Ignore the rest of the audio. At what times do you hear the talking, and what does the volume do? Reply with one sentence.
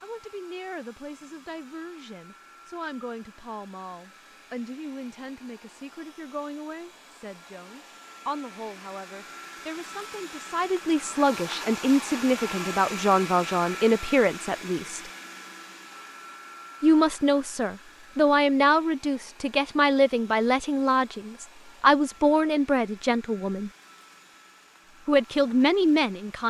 The talking can be heard from 0.0 to 15.1 s, getting louder; from 16.8 to 23.7 s, at a steady volume; and briefly from 25.1 to 26.4 s.